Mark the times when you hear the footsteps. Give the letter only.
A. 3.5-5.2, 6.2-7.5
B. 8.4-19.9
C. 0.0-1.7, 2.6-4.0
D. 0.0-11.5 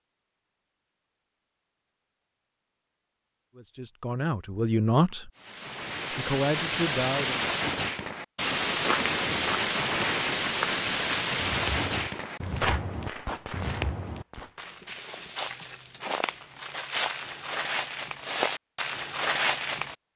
B.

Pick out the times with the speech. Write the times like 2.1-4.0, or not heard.
3.5-5.2, 6.2-7.5.